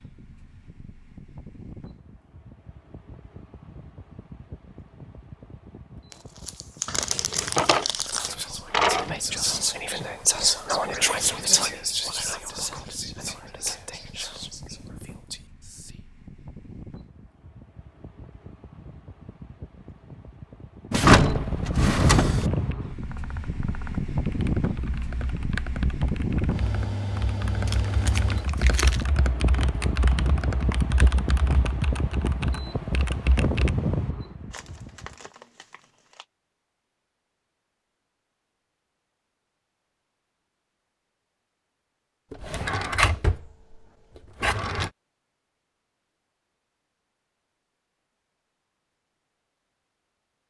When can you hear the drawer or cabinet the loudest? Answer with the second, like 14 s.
21 s.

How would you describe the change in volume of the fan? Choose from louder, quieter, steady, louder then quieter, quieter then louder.
louder.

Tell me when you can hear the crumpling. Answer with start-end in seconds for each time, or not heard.
6.1-8.3, 27.6-29.1, 34.5-36.2.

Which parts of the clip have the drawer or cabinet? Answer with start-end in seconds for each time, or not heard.
7.2-9.1, 20.9-22.5, 42.3-43.8, 44.4-44.9.